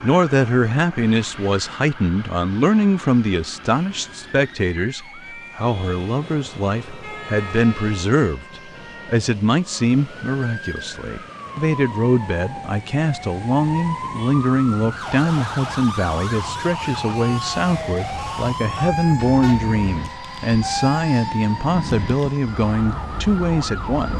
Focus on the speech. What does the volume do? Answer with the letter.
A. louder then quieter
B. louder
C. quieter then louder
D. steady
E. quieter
D.